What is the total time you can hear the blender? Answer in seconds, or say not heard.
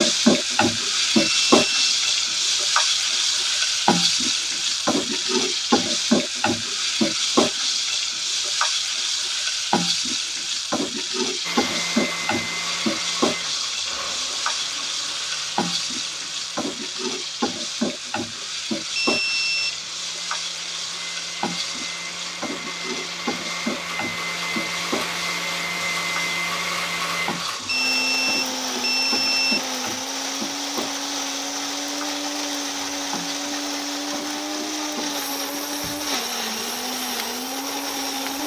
27 s.